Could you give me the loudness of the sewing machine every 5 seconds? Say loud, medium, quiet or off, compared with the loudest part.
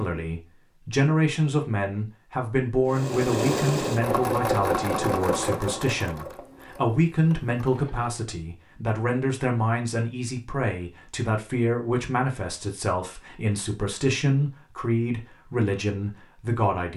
loud, medium, off, off.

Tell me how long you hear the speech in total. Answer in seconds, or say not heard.
17 s.